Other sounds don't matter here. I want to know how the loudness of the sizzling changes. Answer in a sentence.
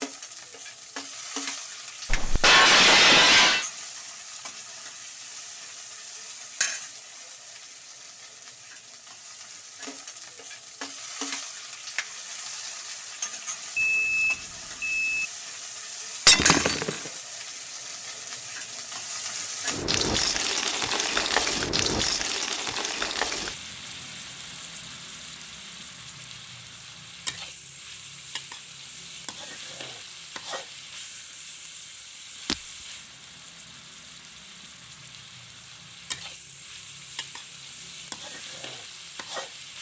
The loudness of the sizzling goes up, then down.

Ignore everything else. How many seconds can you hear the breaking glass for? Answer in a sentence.
The breaking glass can be heard for 2 seconds in total.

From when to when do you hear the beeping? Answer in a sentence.
You can hear the beeping from 13.8 to 15.3 s.